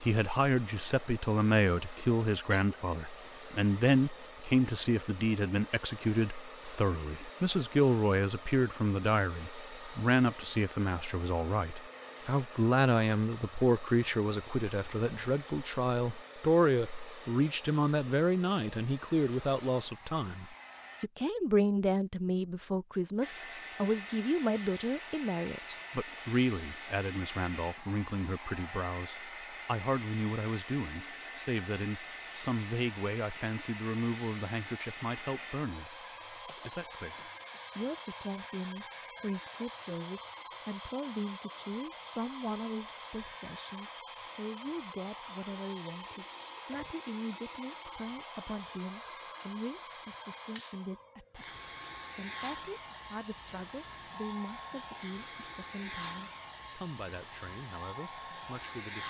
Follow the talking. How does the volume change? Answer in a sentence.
The volume of the talking goes down.